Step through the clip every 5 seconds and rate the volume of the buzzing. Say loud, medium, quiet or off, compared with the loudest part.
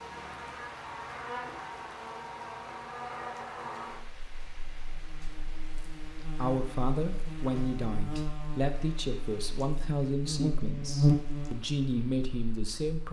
quiet, quiet, loud.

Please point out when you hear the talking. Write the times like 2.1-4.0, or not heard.
6.3-13.0.